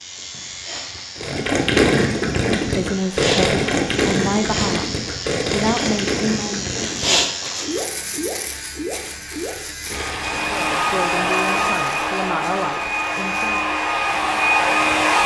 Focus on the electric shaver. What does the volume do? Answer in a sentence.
The volume of the electric shaver goes up, then down.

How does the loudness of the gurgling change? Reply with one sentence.
The loudness of the gurgling goes down.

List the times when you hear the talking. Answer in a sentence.
The talking can be heard from 2.5 to 6.8 s and from 10.5 to 13.6 s.